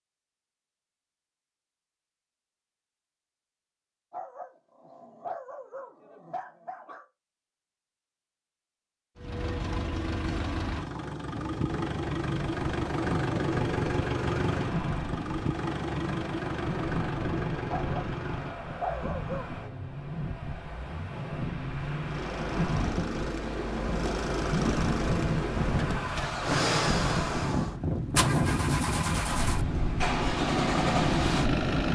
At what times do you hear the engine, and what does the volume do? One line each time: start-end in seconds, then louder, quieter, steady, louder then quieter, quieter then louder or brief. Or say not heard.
9.2-31.9 quieter then louder.